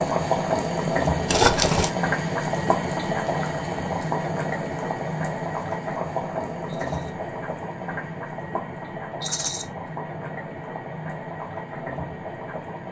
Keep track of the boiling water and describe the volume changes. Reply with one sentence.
The volume of the boiling water goes down.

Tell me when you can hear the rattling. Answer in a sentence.
You can hear the rattling from 1.2 to 1.9 s, from 6.7 to 7.1 s and from 9.2 to 9.7 s.